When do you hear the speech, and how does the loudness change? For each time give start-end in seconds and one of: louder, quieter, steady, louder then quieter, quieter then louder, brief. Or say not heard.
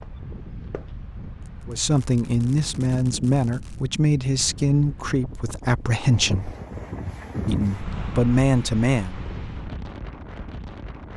1.6-6.5 steady
7.5-9.2 brief.